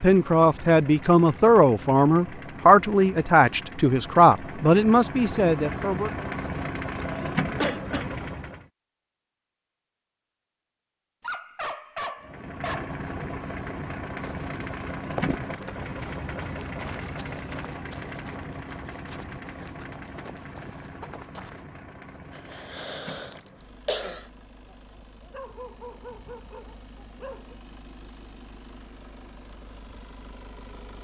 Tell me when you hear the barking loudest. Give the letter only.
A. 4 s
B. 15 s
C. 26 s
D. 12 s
D.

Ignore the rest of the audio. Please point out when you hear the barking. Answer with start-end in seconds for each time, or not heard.
11.2-12.9, 24.6-27.6.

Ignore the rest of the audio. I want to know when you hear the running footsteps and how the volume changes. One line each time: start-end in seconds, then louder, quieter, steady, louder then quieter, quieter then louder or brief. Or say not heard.
14.2-21.6 quieter.